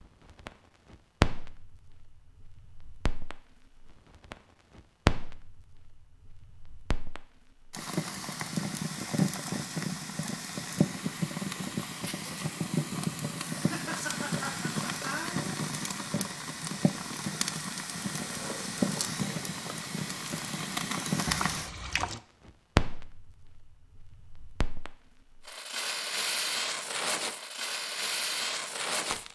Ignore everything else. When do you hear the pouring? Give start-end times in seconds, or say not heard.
21.2-22.2.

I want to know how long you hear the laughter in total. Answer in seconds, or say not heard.
2 s.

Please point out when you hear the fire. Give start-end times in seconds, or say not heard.
0.0-29.3.